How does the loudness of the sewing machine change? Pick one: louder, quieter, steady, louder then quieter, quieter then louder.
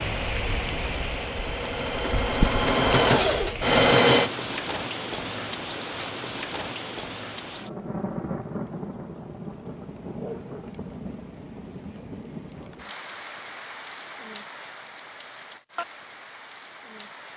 louder.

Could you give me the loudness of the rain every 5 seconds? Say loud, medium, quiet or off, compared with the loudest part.
loud, loud, medium, medium.